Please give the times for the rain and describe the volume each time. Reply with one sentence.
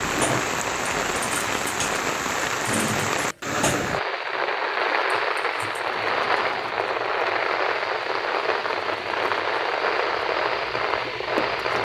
The rain can be heard from 0.0 to 11.7 s, at a steady volume.